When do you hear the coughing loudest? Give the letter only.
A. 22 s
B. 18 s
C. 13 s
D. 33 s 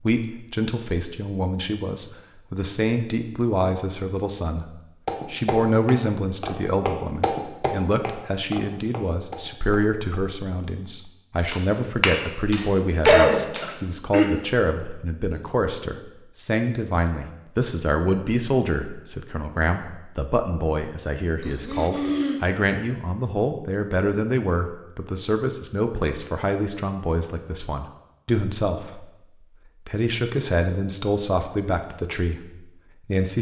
C.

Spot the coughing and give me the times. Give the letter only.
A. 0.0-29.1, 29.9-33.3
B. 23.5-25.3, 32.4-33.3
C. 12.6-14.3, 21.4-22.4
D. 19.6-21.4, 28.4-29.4
C.